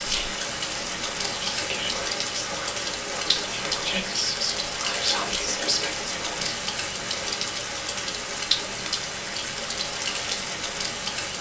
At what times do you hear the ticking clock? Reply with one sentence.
The ticking clock can't be heard in this clip.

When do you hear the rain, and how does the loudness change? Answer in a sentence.
The rain can be heard from 0.0 to 11.3 s, at a steady volume.